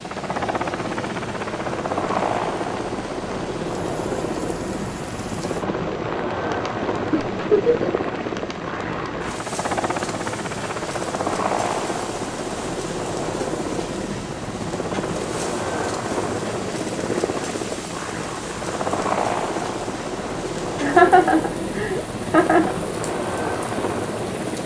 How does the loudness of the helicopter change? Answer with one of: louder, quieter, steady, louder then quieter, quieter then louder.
steady.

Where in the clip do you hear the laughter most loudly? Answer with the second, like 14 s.
21 s.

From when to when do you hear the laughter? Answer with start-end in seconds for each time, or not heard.
7.1-7.9, 20.8-22.7.